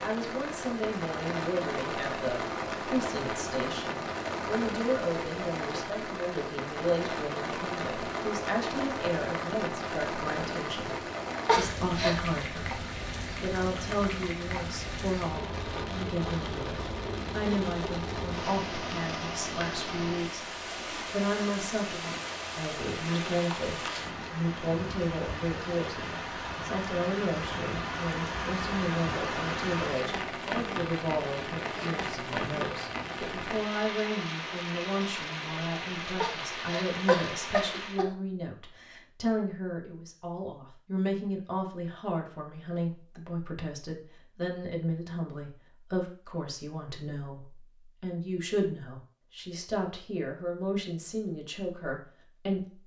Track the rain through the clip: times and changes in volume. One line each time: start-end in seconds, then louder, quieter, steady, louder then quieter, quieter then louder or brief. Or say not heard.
0.0-38.0 steady.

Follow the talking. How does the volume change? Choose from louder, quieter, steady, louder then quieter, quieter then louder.
steady.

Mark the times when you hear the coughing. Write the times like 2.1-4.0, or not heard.
11.4-12.2, 36.2-38.1.